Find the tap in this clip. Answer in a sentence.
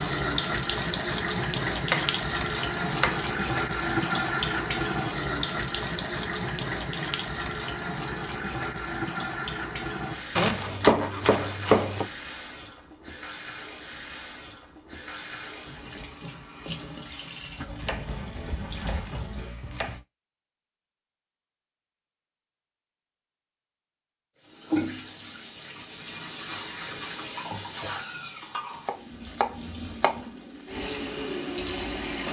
The tap can be heard from 0.0 to 19.8 s and from 24.4 to 32.2 s.